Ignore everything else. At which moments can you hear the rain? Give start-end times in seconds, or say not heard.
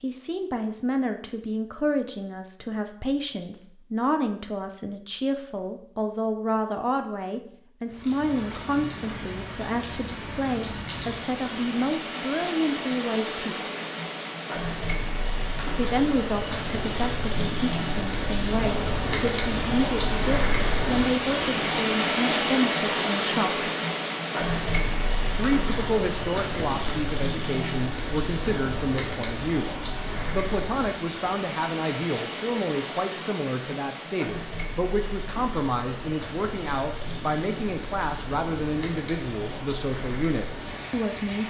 7.8-41.4.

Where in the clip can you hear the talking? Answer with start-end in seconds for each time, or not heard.
0.0-13.6, 15.8-23.7, 25.4-41.4.